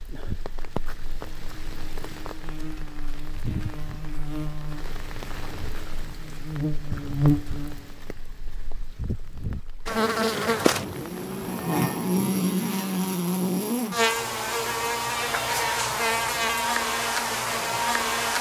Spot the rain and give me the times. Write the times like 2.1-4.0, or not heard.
0.0-11.5.